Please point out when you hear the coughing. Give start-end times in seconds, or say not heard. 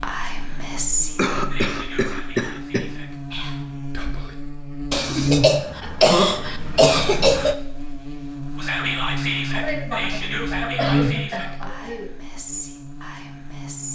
1.1-2.9, 4.9-7.5, 9.5-12.1.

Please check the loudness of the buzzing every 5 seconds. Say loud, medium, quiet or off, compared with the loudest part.
medium, loud, loud.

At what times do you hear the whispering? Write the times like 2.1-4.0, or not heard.
0.0-4.3, 8.6-13.8.